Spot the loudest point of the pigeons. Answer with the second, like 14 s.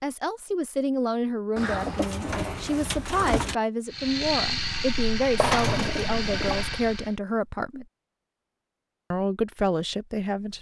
6 s.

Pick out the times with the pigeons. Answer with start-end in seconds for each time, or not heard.
1.6-3.5, 5.3-6.7.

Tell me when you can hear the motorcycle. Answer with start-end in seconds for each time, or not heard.
3.9-7.2.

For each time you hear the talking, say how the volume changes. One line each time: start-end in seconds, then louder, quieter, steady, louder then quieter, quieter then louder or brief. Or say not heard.
0.0-7.8 steady
9.1-10.5 brief.